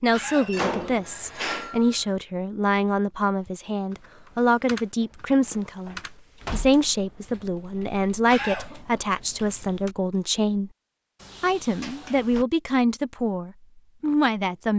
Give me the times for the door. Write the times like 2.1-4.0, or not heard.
0.4-2.0, 5.5-6.8, 11.2-12.4.